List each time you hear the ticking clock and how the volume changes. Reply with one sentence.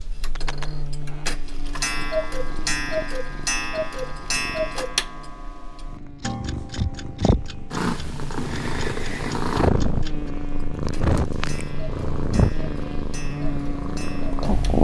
The ticking clock can be heard from 0.0 to 14.8 s, getting quieter.